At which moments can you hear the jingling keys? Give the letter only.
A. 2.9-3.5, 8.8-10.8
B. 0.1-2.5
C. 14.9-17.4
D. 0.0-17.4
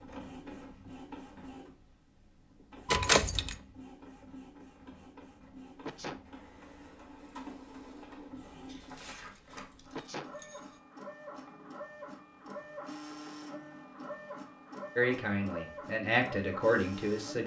A.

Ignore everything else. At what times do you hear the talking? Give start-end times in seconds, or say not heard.
14.9-17.4.